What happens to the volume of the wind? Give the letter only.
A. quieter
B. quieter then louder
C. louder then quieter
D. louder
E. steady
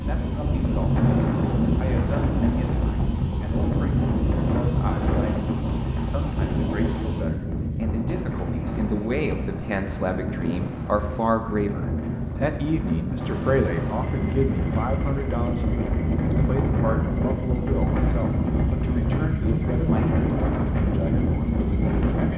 B.